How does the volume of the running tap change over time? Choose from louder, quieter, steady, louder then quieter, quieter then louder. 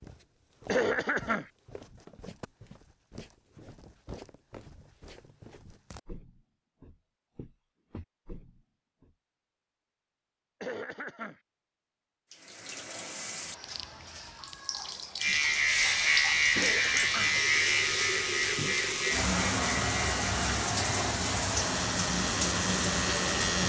louder.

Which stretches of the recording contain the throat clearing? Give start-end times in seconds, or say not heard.
0.7-1.4, 10.6-11.4, 16.6-17.4.